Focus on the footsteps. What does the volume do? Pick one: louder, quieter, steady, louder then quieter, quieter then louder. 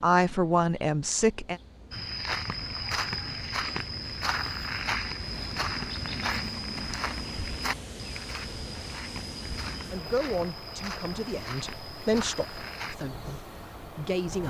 quieter.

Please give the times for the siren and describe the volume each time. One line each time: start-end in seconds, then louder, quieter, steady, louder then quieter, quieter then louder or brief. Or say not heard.
not heard.